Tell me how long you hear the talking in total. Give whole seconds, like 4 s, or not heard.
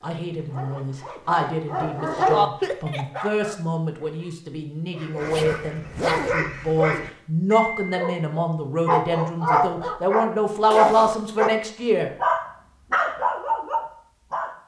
12 s.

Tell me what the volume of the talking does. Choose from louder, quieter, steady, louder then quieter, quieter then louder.
louder.